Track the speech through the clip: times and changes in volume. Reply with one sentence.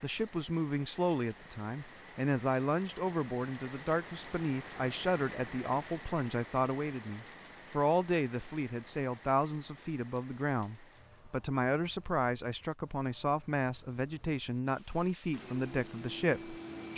You can hear the speech from 0.0 to 16.9 s, at a steady volume.